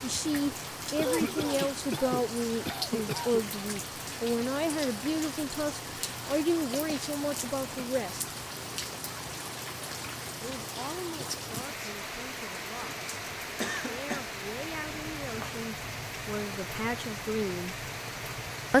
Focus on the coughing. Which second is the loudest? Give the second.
1 s.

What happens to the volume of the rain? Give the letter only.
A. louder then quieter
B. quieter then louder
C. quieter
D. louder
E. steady
E.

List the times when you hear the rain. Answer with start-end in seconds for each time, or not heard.
0.0-18.7.